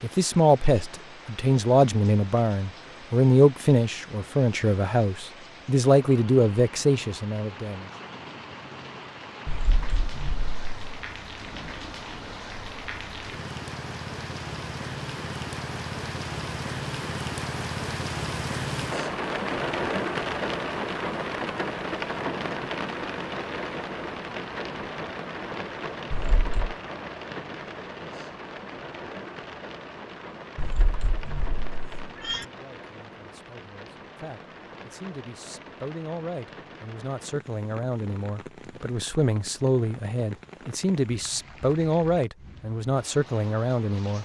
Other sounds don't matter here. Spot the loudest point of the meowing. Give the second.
32 s.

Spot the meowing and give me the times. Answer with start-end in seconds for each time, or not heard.
9.4-10.8, 26.1-26.8, 30.6-32.5.